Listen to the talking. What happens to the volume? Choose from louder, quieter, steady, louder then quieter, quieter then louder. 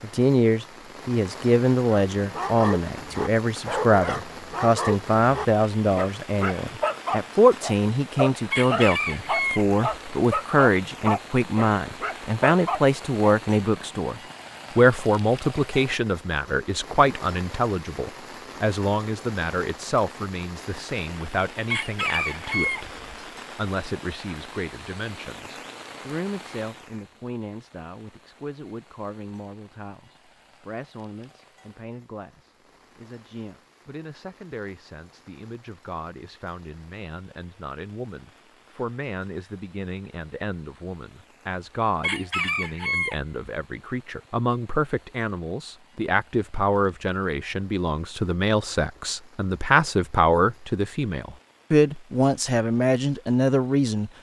quieter then louder.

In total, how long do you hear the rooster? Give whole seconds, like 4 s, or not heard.
4 s.